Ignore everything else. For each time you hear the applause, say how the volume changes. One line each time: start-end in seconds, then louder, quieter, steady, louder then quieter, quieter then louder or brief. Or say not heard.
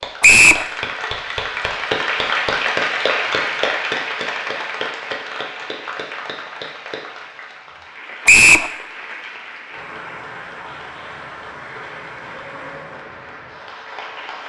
0.0-14.4 quieter.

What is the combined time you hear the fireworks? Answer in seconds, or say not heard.
not heard.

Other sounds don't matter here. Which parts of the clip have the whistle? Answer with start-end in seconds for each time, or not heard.
0.2-0.7, 8.2-8.7.